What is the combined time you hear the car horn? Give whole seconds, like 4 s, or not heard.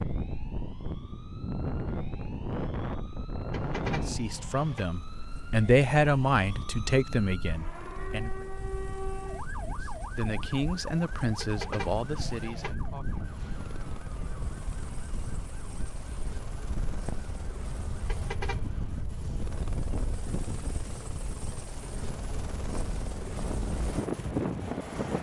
4 s.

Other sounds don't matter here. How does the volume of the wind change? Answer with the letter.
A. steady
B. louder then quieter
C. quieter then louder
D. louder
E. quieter
C.